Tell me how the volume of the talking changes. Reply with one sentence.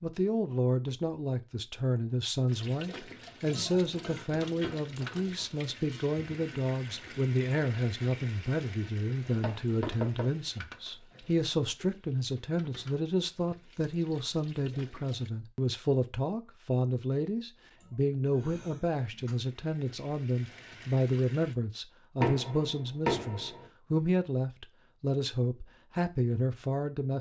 The volume of the talking stays about the same.